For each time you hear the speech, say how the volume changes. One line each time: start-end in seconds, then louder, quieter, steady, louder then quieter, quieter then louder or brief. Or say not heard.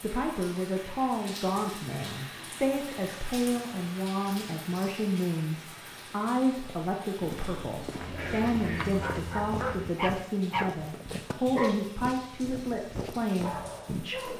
0.0-14.3 steady.